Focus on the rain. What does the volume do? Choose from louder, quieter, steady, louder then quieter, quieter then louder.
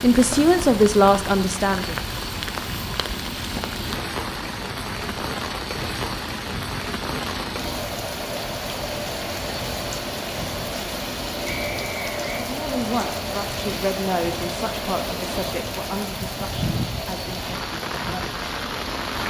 steady.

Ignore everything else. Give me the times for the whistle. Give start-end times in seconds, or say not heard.
11.4-12.4.